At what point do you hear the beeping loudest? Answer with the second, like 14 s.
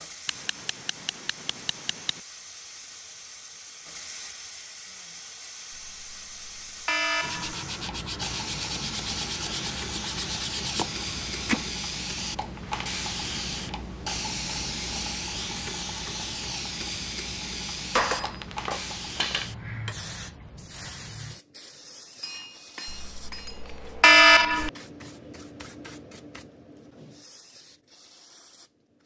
24 s.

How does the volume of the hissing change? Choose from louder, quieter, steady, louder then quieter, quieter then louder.
louder then quieter.